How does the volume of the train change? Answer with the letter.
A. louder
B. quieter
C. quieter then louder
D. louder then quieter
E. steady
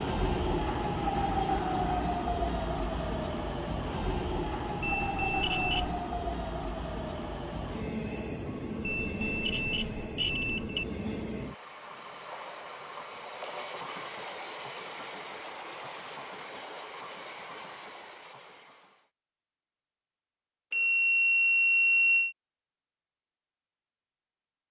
B.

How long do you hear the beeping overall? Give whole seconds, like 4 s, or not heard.
5 s.